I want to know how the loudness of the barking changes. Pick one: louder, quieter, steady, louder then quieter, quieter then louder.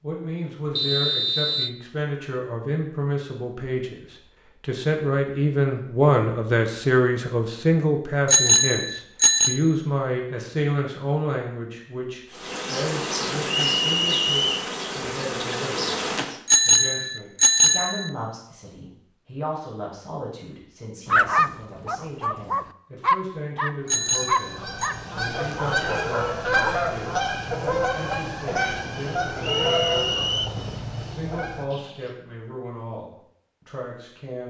louder then quieter.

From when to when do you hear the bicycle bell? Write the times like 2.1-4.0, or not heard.
8.2-9.6, 16.4-18.1, 23.9-24.9.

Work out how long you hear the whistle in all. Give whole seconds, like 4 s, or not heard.
3 s.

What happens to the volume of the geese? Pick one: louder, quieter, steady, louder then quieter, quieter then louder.
louder then quieter.